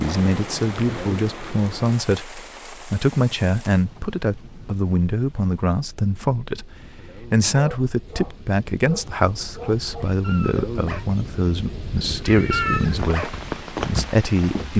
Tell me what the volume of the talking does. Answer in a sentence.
The volume of the talking stays about the same.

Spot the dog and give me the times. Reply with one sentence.
The dog can be heard from 7.5 to 13.8 s.